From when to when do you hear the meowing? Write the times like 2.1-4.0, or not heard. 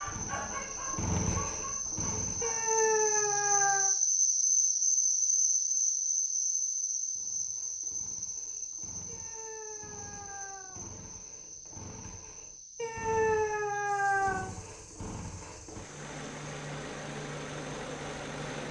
2.4-3.9, 9.1-11.0, 12.8-14.4.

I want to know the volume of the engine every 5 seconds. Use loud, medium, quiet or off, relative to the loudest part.
loud, quiet, medium, loud.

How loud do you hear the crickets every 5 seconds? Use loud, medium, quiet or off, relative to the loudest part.
loud, loud, quiet, quiet.